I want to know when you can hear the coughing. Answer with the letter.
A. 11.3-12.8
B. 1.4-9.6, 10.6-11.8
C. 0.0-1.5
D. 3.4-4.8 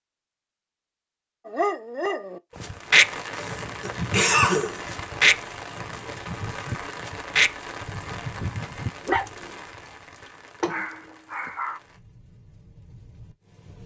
D.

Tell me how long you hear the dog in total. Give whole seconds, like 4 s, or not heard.
9 s.